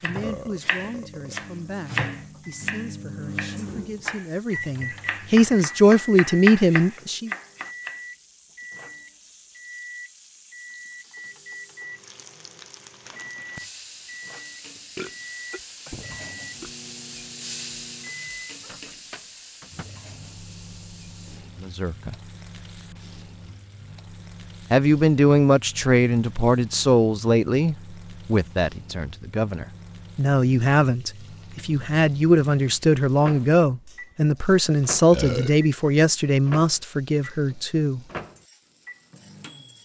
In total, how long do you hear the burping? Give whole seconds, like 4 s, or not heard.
3 s.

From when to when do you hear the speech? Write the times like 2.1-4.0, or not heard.
0.0-7.3, 21.6-22.1, 24.7-38.0.